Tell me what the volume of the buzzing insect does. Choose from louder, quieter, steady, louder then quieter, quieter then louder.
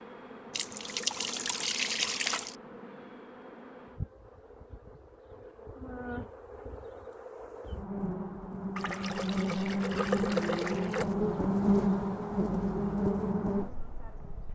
louder.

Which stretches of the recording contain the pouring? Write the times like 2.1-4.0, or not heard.
0.5-2.5, 8.8-11.1.